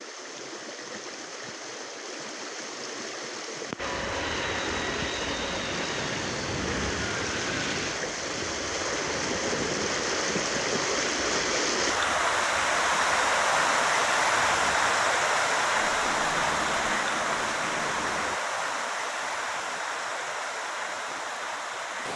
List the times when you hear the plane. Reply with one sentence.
The plane can be heard from 3.8 to 18.4 s.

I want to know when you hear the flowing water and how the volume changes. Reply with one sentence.
You can hear the flowing water from 0.0 to 22.1 s, getting louder then quieter.